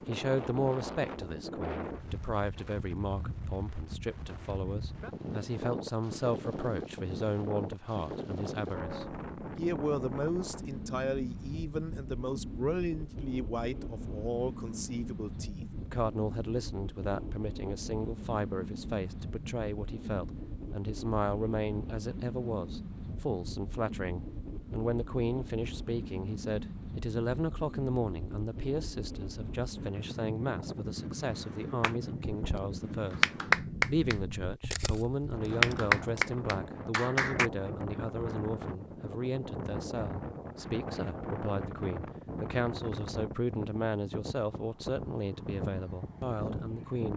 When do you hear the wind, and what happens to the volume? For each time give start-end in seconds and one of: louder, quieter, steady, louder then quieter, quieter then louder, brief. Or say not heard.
0.0-47.1 steady.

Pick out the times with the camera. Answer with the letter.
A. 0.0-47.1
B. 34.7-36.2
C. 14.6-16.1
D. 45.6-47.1
B.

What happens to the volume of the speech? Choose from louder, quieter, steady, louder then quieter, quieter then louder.
steady.